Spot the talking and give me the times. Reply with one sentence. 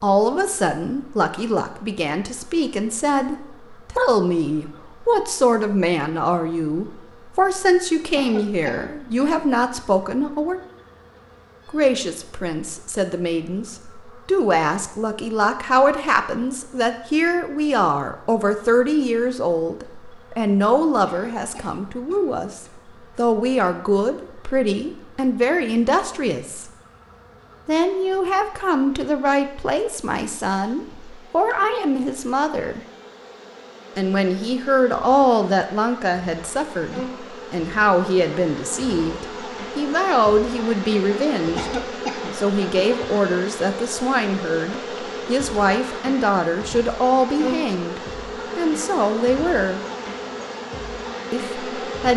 The talking can be heard from 0.0 to 10.6 s, from 11.7 to 26.6 s, from 27.6 to 32.8 s, from 34.0 to 41.8 s, from 42.4 to 49.8 s and from 51.3 to 52.1 s.